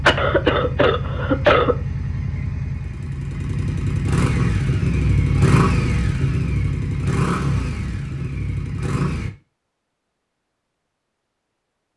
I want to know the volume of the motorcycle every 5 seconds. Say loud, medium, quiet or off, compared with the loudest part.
loud, loud, off.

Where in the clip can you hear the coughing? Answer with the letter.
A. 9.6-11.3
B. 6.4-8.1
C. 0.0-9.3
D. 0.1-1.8
D.